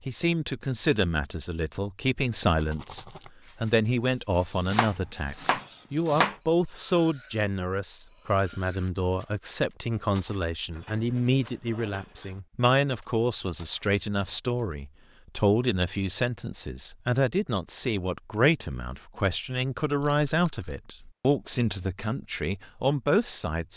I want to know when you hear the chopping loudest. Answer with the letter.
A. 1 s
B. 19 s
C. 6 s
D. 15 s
C.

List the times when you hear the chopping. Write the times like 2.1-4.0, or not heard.
4.7-6.3.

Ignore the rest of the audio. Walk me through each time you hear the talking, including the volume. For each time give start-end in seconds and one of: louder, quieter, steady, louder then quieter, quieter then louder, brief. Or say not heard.
0.1-23.7 steady.